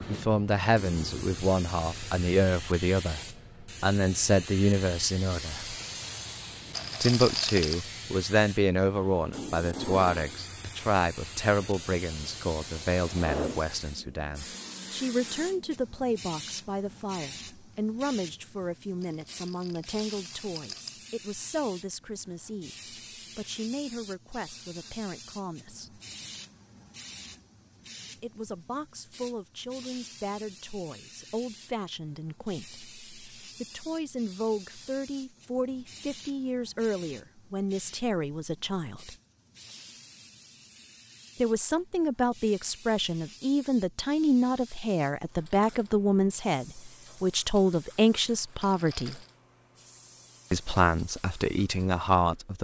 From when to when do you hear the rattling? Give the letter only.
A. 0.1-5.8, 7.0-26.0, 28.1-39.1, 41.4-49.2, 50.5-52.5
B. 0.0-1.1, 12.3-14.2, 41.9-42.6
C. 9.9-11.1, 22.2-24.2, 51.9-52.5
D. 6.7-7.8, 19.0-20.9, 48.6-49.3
D.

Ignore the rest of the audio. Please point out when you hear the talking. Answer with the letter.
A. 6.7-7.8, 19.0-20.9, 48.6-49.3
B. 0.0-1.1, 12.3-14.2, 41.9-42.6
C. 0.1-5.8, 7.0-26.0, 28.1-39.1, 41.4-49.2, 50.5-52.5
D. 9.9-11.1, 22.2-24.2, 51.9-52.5
C.